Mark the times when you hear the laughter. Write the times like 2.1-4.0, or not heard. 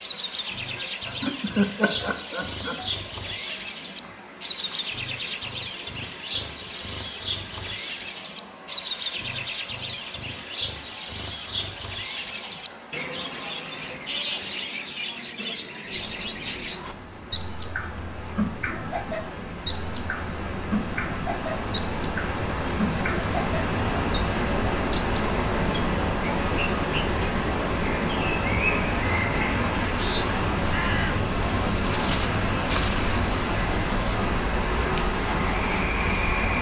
0.8-2.9.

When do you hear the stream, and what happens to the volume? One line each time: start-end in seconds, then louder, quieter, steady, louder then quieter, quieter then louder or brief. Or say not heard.
0.0-36.5 louder.